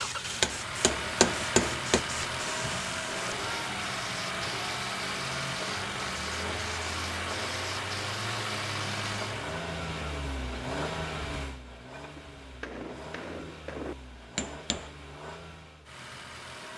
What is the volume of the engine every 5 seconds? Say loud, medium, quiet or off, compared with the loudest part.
loud, loud, medium, medium.